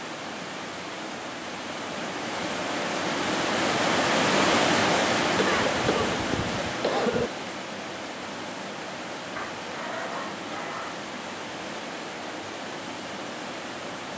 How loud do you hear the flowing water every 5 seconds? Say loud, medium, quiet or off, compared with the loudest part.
loud, loud, medium.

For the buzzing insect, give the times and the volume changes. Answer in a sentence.
You can't hear the buzzing insect here.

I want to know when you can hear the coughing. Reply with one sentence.
The coughing can be heard from 5.3 to 7.3 s.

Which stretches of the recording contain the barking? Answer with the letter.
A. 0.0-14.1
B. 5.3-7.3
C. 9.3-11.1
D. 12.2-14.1
C.